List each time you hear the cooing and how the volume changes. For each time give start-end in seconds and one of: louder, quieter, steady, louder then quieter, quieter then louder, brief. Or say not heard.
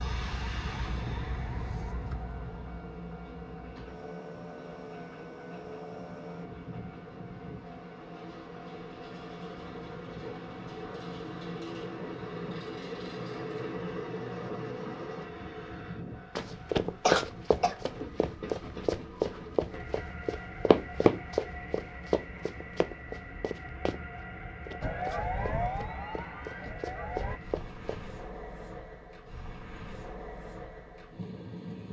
not heard.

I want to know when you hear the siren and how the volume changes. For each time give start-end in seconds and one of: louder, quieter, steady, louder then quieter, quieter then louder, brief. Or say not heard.
0.0-6.5 quieter then louder
24.8-27.4 brief.